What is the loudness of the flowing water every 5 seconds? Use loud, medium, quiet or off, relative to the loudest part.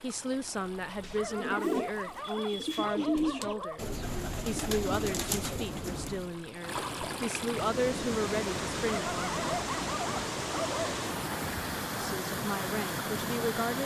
quiet, loud, loud.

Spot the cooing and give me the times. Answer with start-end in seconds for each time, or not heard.
1.3-6.3.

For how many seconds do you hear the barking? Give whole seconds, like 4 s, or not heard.
5 s.